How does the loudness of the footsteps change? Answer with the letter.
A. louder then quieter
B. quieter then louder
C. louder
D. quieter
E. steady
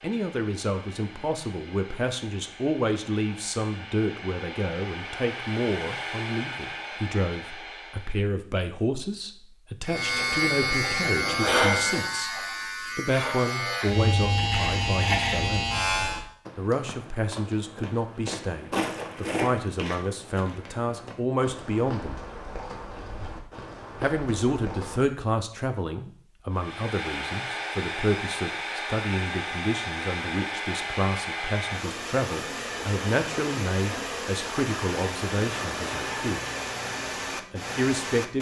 A.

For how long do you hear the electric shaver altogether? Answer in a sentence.
The electric shaver can be heard for 6 seconds in total.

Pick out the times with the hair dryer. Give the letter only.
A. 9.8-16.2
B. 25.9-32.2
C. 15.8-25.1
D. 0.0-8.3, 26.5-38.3
D.